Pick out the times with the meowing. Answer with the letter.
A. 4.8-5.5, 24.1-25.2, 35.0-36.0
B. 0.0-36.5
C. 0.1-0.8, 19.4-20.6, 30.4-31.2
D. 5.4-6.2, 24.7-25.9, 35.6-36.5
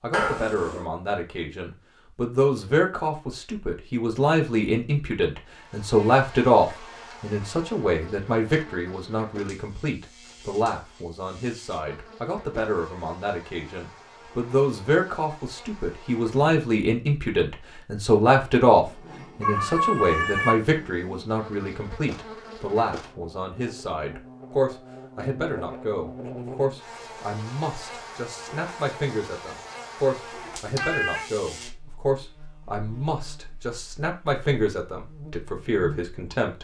C.